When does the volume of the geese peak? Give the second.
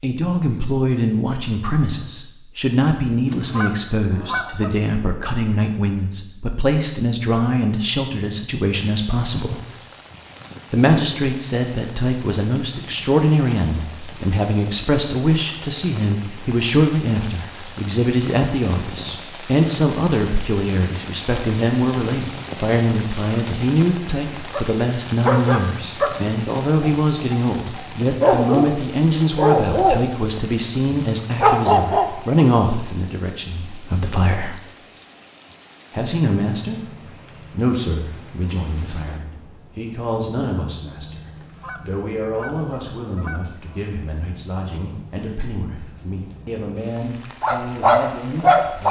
4 s.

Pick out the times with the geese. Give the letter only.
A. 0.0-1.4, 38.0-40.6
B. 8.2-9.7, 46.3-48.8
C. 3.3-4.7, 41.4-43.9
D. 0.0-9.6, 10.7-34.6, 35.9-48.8
C.